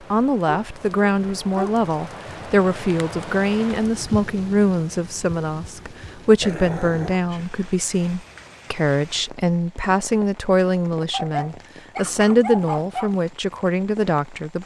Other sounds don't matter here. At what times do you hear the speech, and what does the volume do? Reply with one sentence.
The speech can be heard from 0.1 to 14.6 s, at a steady volume.